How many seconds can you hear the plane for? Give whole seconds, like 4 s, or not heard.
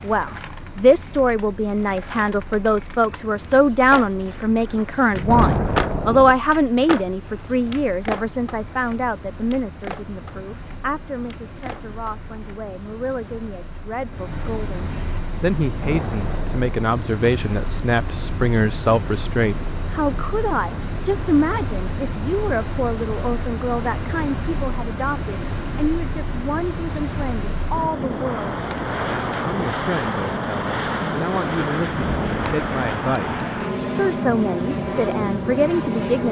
36 s.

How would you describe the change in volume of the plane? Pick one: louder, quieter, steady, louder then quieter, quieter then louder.
louder.